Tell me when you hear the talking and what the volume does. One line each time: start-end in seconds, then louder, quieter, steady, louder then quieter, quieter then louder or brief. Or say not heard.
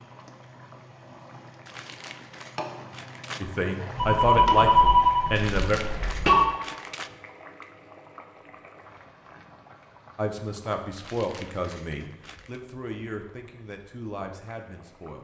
3.4-5.8 brief
10.2-15.1 quieter.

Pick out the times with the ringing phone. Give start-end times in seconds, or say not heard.
4.0-6.5.